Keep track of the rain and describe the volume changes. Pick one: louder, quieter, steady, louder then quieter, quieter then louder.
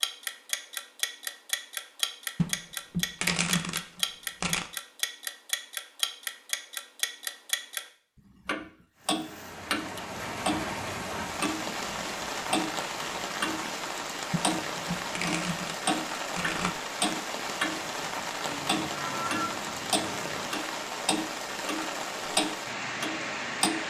steady.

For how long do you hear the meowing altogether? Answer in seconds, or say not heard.
2 s.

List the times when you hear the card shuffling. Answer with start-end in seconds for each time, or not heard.
2.4-4.7, 14.3-16.8.